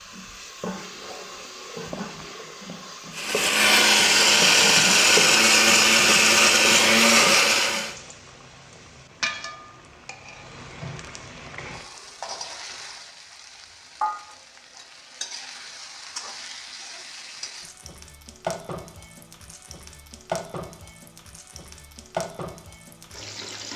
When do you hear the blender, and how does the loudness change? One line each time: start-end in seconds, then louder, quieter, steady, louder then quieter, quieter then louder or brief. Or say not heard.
3.1-8.0 steady.